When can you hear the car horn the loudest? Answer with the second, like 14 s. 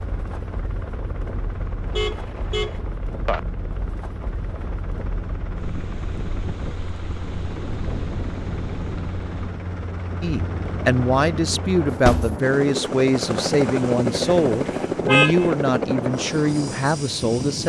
15 s.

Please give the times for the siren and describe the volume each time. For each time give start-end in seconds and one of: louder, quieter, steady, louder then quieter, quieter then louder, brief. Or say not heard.
not heard.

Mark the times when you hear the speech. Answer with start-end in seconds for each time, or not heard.
10.2-17.6.